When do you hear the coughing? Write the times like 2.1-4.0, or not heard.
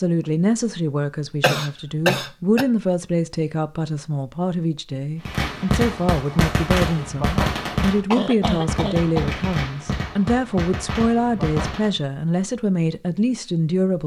1.4-2.6, 8.1-9.3.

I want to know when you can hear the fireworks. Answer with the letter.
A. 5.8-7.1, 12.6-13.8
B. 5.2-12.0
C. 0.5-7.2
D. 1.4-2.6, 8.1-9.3
B.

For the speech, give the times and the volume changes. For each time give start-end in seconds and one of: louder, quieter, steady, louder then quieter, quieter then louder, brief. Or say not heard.
0.0-14.0 steady.